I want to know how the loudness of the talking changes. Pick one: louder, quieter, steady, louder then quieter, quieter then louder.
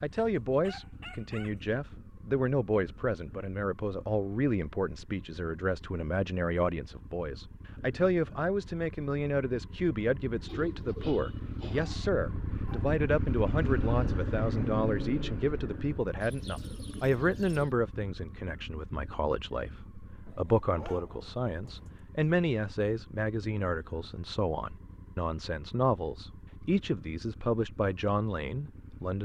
steady.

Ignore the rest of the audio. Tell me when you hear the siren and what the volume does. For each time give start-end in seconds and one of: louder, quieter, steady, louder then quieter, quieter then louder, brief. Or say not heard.
not heard.